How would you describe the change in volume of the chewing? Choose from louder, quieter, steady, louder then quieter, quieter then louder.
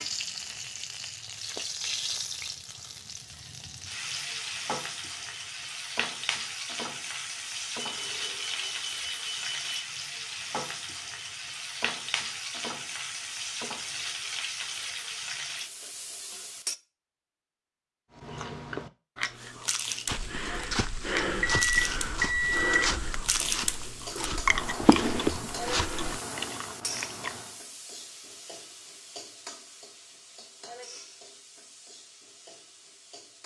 louder then quieter.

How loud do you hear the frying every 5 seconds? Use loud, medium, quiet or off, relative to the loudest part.
loud, loud, loud, loud, medium, medium, quiet.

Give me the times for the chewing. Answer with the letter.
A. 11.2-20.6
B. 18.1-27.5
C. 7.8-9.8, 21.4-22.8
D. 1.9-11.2
B.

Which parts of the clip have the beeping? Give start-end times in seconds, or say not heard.
7.8-9.8, 21.4-22.8.